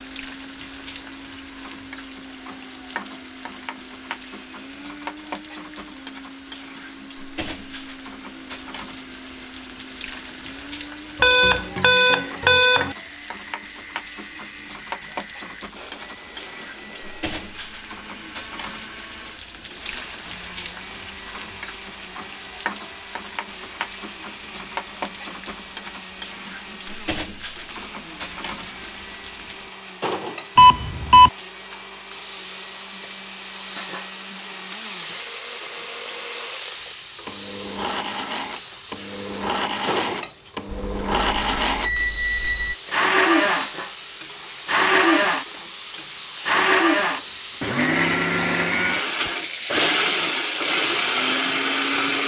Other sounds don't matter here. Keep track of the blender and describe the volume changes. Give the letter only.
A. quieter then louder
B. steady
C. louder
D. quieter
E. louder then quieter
C.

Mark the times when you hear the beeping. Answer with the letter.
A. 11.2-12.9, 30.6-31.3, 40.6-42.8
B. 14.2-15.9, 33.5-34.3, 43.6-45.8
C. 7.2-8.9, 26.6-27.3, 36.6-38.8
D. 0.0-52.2
A.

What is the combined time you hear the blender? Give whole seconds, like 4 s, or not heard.
52 s.